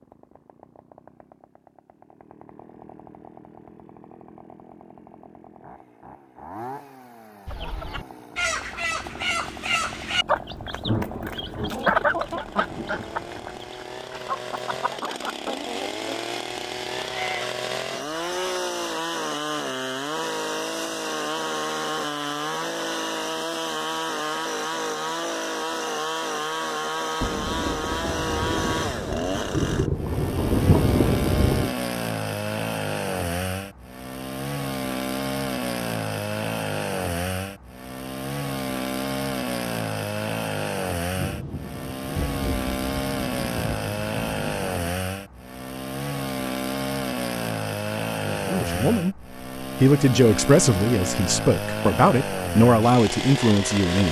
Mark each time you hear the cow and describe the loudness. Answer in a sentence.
The cow can't be heard in this clip.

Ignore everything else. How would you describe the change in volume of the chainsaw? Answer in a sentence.
The volume of the chainsaw goes up.